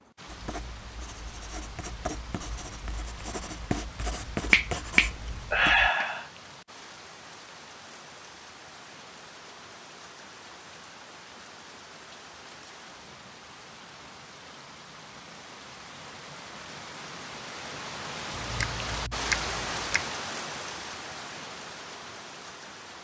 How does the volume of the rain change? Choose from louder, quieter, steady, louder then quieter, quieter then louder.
louder.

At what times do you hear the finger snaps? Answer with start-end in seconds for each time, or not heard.
4.5-6.2, 18.4-20.1.